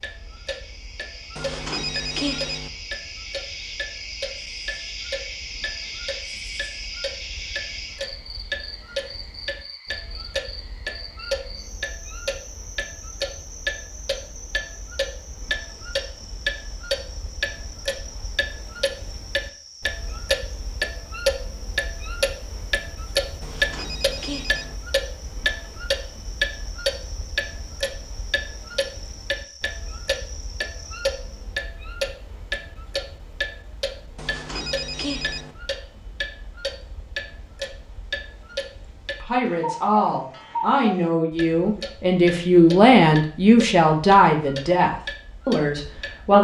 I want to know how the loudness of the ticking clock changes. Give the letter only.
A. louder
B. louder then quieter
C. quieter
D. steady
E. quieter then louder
B.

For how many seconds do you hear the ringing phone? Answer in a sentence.
You can hear the ringing phone for 4 seconds altogether.